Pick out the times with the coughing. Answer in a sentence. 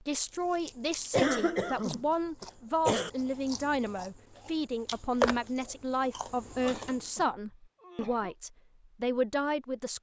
You can hear the coughing from 1.1 to 3.1 s and from 6.5 to 8.3 s.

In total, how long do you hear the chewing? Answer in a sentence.
The chewing can be heard for 7 seconds in total.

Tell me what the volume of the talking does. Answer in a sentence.
The loudness of the talking stays about the same.